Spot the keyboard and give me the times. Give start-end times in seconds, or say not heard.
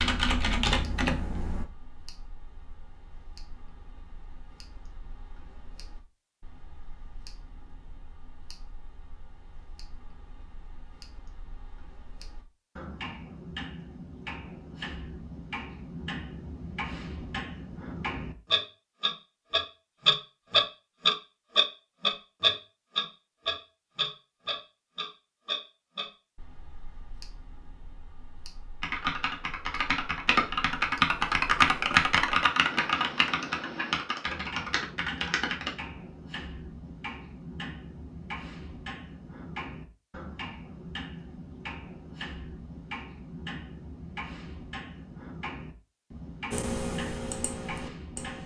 0.0-1.6, 28.8-35.7, 46.5-48.4.